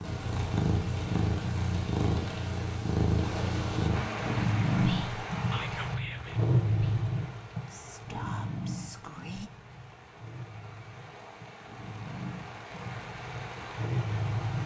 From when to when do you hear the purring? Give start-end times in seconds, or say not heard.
0.0-14.6.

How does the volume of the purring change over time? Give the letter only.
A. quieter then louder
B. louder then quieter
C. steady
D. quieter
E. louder
A.